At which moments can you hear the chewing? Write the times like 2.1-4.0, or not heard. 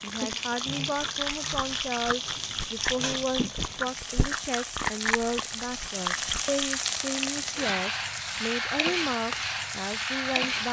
1.0-6.7.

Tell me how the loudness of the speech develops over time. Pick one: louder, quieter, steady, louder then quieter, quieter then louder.
steady.